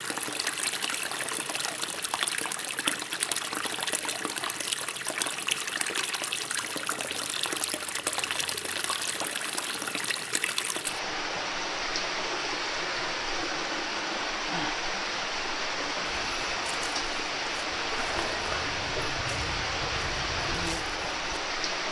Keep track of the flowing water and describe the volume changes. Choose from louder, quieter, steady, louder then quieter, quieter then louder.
steady.